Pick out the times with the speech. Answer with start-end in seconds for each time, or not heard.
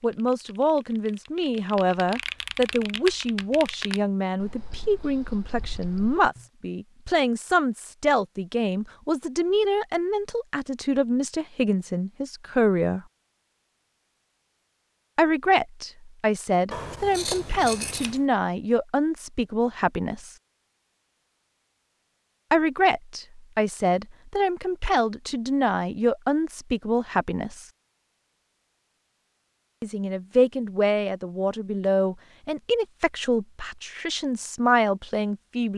0.0-13.0, 15.2-20.4, 22.5-27.6, 29.8-35.7.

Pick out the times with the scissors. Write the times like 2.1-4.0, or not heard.
16.7-18.2.